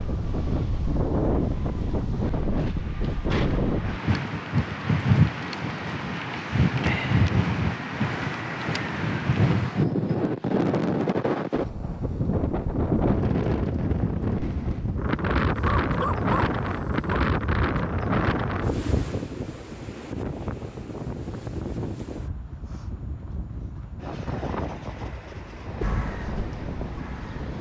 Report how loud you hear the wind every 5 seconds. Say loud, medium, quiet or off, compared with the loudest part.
loud, loud, loud, loud, medium, medium.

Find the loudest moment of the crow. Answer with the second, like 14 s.
26 s.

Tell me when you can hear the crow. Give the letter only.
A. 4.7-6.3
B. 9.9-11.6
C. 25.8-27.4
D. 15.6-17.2
C.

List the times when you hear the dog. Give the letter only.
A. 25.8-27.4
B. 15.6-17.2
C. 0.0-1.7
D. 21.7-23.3
B.